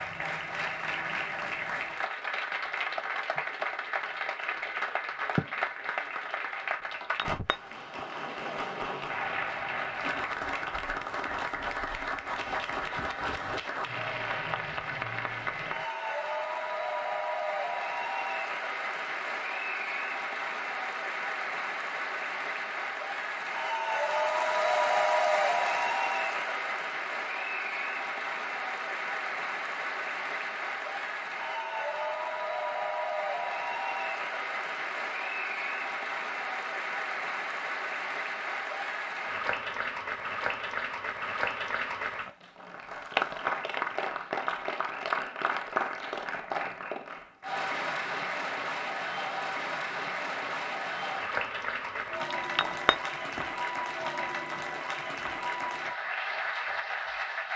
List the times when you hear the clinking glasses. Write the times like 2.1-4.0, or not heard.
6.9-8.1, 52.4-53.4.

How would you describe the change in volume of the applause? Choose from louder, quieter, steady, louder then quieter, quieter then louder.
steady.